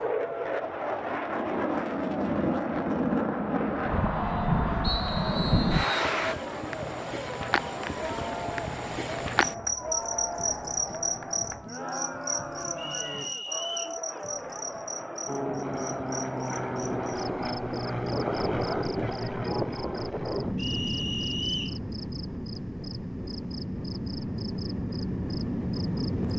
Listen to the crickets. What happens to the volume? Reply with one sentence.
The volume of the crickets goes down.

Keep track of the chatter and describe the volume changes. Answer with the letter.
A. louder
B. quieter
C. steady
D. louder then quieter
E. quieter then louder
C.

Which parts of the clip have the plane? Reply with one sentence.
You can hear the plane from 0.0 to 6.3 s and from 15.2 to 26.3 s.